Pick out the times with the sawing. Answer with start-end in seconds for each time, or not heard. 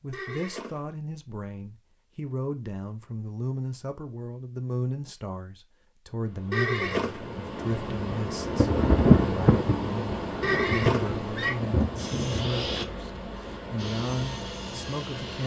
11.9-15.4.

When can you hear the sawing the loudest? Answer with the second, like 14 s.
13 s.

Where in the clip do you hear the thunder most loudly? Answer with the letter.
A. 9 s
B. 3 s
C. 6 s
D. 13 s
A.